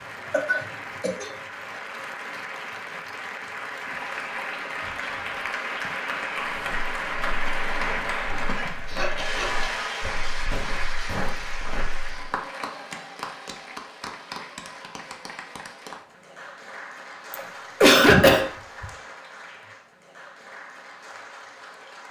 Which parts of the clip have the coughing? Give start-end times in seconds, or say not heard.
0.3-1.4, 8.4-9.8, 17.3-18.9.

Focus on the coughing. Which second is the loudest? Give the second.
18 s.